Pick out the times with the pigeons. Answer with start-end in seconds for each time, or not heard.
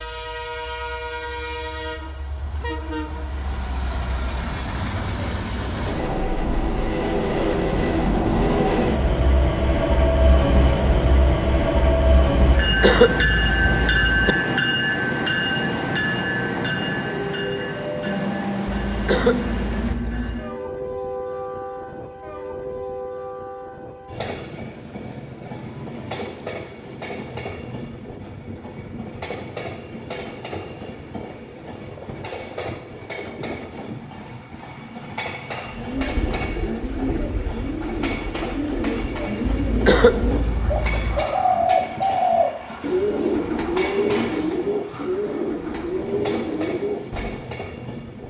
35.7-47.4.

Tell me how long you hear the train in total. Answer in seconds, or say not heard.
48 s.